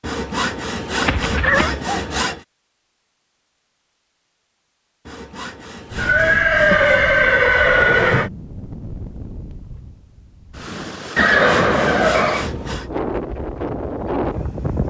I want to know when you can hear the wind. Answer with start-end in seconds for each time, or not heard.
5.9-14.8.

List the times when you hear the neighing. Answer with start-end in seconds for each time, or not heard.
1.1-1.8, 6.0-8.3, 11.2-12.5.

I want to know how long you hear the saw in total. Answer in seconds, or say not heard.
6 s.